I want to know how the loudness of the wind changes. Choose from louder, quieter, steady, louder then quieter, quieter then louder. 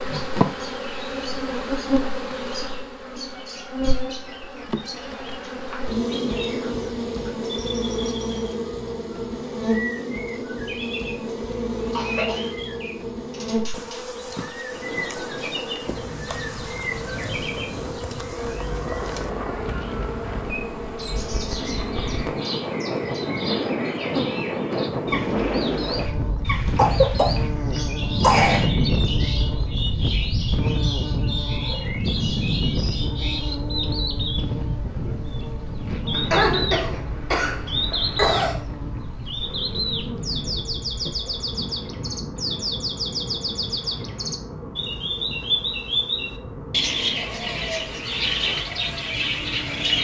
louder then quieter.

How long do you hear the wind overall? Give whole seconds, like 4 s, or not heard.
35 s.